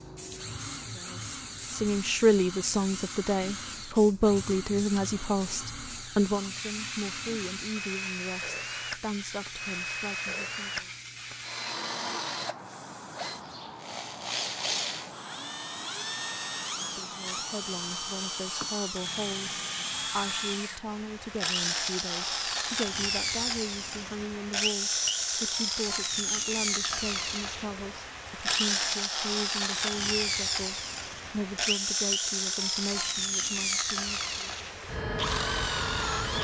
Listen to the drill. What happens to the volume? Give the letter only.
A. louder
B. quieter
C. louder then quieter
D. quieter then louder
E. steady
A.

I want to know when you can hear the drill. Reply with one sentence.
The drill can be heard from 0.2 to 36.3 s.